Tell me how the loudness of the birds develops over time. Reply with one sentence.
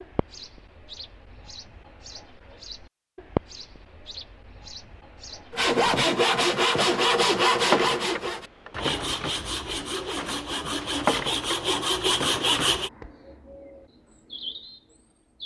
The loudness of the birds goes up, then down.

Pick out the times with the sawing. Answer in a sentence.
The sawing can be heard from 5.5 to 12.9 s.